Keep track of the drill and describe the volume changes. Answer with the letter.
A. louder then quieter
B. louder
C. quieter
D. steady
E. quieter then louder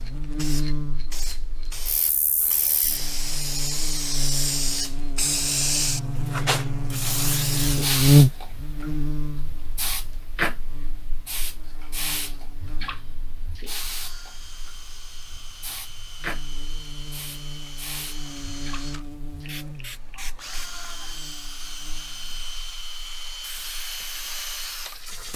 B.